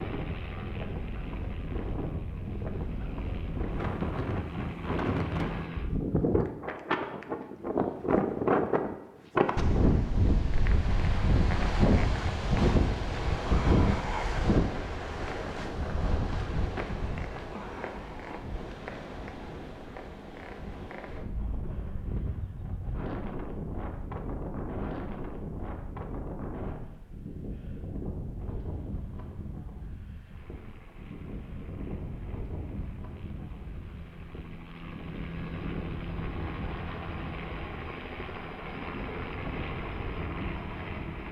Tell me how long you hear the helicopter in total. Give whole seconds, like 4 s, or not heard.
17 s.